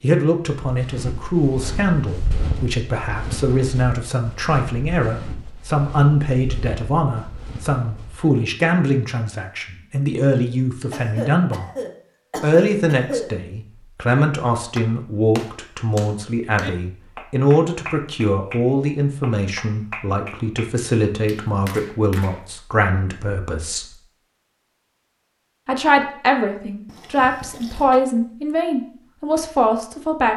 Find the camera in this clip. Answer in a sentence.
The camera can't be heard in this clip.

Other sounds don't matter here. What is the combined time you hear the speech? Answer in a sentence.
The speech can be heard for 28 seconds in total.